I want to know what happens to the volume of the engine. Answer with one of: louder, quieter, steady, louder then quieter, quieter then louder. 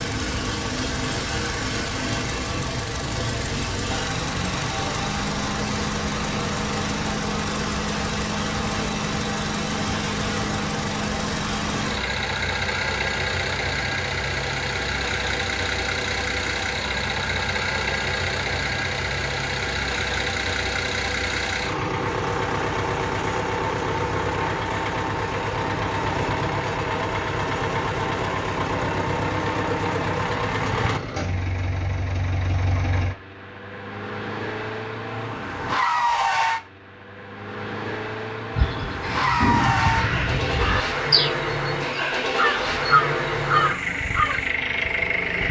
steady.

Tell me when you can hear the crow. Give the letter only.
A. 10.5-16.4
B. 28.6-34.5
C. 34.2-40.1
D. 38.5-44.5
D.